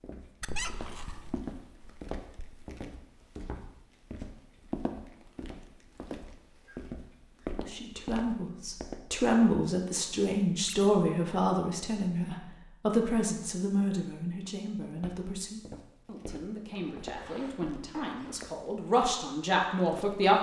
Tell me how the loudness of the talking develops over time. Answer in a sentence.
The loudness of the talking goes down, then up.